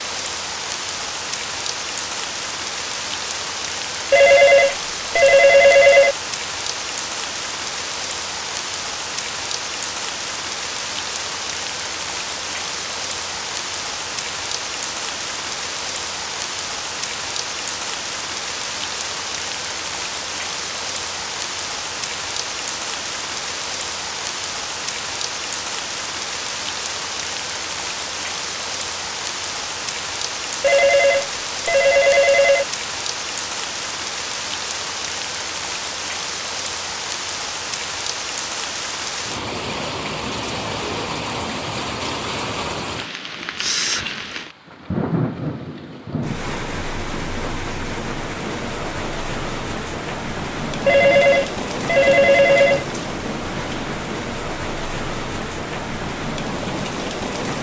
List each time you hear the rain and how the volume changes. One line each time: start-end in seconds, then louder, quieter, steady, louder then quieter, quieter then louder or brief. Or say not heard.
0.0-57.5 steady.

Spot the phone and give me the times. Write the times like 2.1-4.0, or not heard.
4.1-6.2, 30.6-32.6, 50.9-52.9.